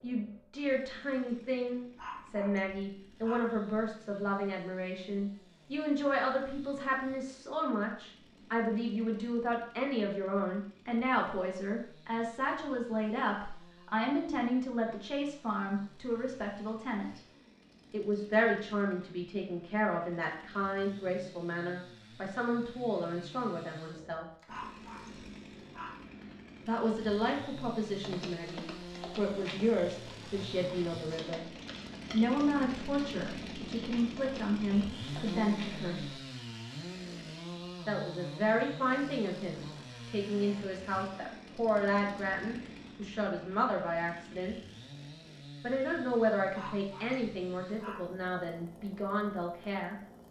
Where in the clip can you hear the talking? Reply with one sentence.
The talking can be heard from 0.0 to 17.2 s, from 17.9 to 24.2 s, from 26.6 to 31.5 s, from 32.1 to 36.1 s, from 37.9 to 44.5 s and from 45.6 to 50.0 s.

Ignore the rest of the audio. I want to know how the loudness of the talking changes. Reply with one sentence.
The loudness of the talking stays about the same.